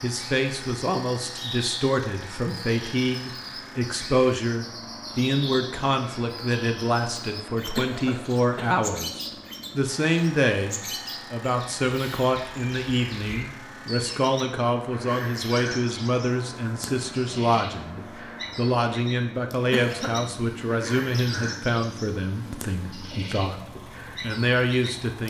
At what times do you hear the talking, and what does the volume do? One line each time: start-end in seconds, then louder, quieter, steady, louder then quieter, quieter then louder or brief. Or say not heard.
0.0-23.6 steady
24.2-25.2 brief.